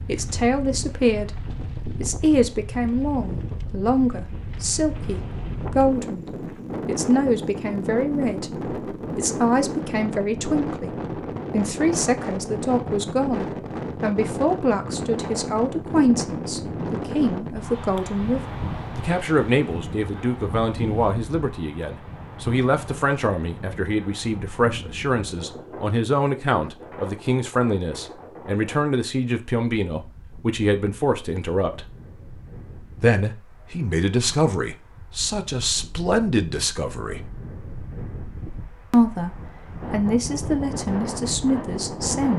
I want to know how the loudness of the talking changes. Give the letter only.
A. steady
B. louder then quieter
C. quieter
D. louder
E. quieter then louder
A.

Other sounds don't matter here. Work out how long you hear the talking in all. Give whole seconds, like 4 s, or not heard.
39 s.